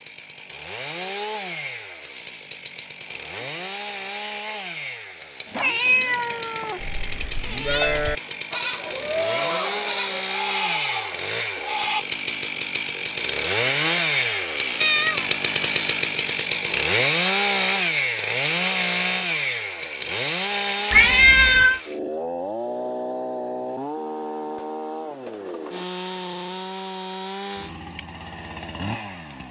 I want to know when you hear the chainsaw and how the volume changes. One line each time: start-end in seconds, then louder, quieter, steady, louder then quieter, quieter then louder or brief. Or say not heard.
0.0-29.4 louder then quieter.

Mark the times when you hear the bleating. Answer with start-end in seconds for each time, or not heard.
6.8-12.1.